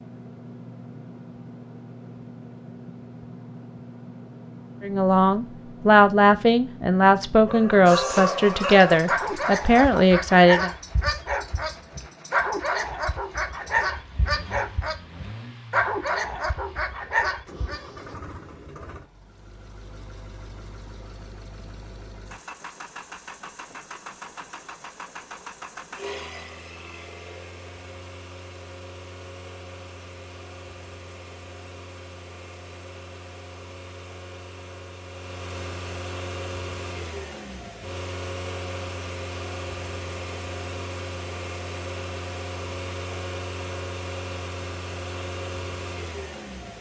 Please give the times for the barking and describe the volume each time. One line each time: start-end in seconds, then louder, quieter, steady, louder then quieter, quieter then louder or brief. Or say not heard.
7.5-17.8 steady.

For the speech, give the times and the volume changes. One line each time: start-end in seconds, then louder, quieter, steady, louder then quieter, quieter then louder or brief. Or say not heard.
4.8-10.7 steady.